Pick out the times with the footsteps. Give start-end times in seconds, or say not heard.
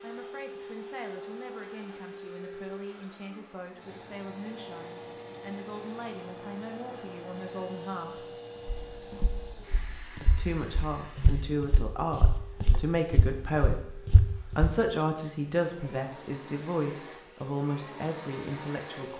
8.9-14.8.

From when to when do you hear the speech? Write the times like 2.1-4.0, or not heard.
0.0-8.3, 10.2-19.1.